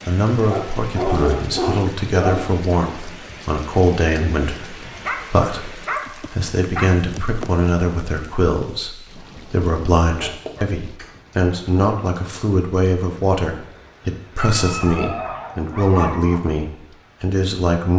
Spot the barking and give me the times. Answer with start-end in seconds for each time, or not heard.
0.5-2.5, 5.0-6.9, 10.2-10.7, 14.3-16.4.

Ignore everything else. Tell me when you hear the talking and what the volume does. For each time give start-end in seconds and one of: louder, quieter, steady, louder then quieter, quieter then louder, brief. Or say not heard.
0.0-17.9 steady.